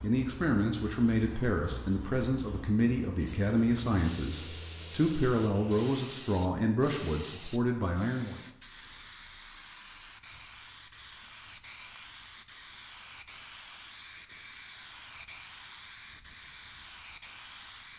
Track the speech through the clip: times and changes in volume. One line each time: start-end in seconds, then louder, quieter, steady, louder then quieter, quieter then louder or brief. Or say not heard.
0.0-8.4 steady.